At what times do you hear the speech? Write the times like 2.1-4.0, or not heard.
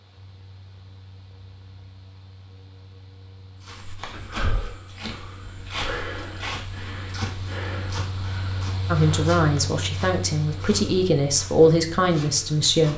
8.8-12.9.